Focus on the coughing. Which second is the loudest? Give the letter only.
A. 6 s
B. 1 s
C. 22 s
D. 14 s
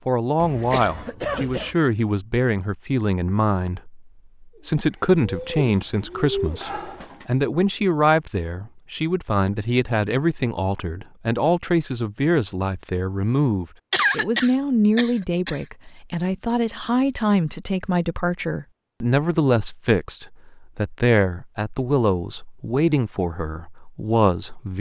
D.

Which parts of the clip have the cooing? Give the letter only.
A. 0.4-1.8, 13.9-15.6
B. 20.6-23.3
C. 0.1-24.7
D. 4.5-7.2
D.